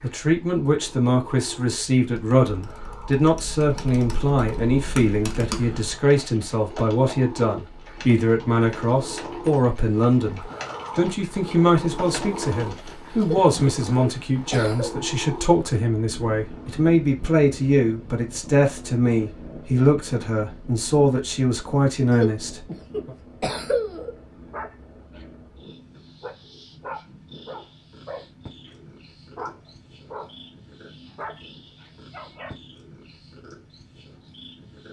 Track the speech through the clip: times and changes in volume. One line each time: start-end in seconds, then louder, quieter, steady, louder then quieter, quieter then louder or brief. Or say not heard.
0.0-23.1 steady.